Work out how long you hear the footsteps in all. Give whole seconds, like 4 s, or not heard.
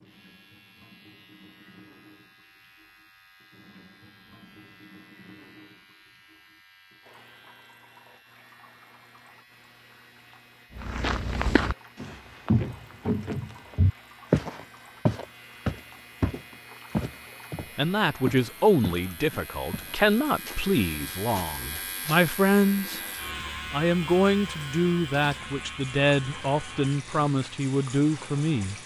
11 s.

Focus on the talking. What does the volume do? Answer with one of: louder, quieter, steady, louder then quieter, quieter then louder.
steady.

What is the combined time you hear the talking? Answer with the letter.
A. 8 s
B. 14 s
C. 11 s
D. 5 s
C.